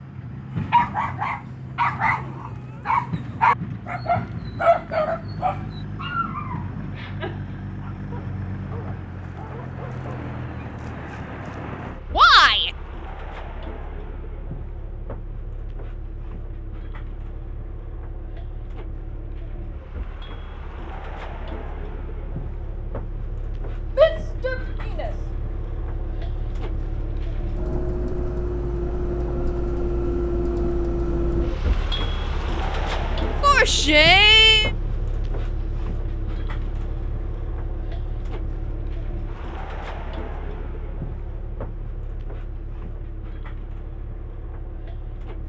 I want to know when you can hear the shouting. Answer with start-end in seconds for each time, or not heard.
12.2-12.7, 23.9-25.1, 33.4-34.7.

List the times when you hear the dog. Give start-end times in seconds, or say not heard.
0.7-10.3.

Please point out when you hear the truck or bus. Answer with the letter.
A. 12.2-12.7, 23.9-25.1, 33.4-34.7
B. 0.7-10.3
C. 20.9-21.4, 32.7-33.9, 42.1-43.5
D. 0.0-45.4
D.